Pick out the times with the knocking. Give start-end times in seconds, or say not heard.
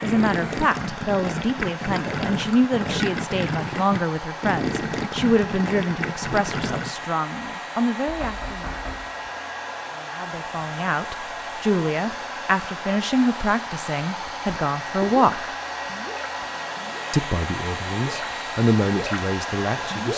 8.1-9.1.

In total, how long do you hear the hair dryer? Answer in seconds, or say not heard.
20 s.